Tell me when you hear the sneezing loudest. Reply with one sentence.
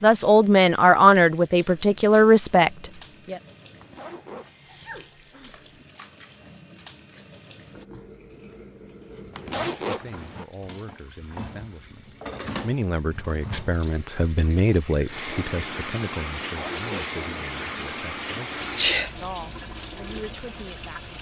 The loudest moment of the sneezing is at 19 seconds.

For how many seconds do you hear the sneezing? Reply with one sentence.
You can hear the sneezing for 2 seconds altogether.